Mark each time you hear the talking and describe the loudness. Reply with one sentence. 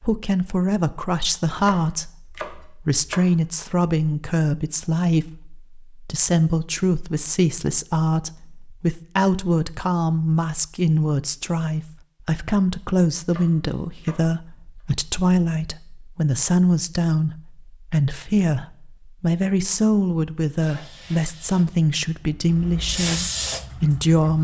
You can hear the talking from 0.0 to 24.3 s, at a steady volume.